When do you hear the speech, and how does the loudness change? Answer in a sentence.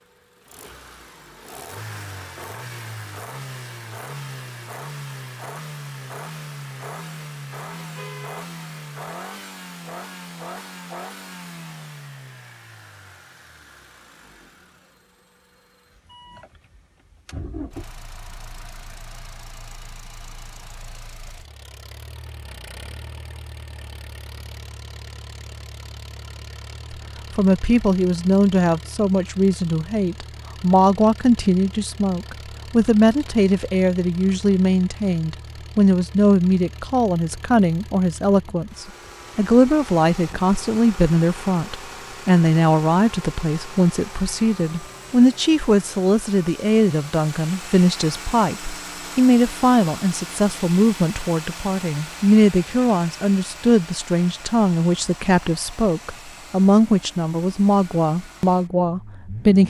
You can hear the speech from 26.9 to 59.6 s, at a steady volume.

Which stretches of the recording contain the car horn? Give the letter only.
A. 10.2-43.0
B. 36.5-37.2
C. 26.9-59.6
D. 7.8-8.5
D.